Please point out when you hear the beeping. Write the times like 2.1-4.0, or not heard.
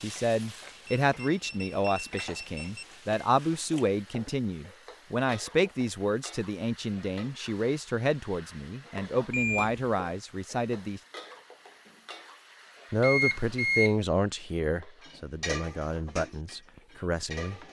0.8-2.9, 9.3-9.9, 13.0-13.9.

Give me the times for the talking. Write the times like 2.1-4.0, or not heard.
0.0-11.0, 12.9-17.6.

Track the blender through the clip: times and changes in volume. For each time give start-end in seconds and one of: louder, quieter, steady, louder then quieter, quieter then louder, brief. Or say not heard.
not heard.